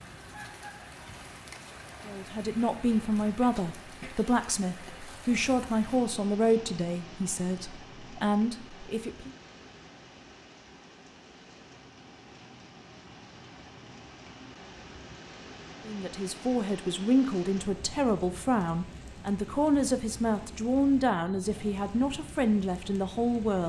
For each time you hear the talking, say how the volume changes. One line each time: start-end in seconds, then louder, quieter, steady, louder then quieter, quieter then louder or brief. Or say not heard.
2.0-9.3 steady
15.8-23.6 steady.